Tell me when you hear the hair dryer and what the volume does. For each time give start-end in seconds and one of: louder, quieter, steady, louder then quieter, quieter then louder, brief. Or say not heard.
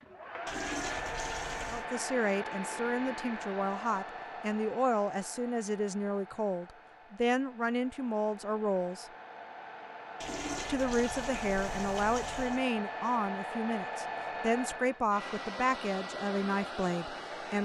0.0-17.5 quieter then louder.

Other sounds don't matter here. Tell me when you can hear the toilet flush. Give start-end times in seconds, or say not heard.
0.5-1.9, 10.2-12.7.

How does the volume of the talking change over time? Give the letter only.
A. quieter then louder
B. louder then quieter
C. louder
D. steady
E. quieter
D.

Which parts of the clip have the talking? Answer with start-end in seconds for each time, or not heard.
1.6-9.1, 10.7-17.5.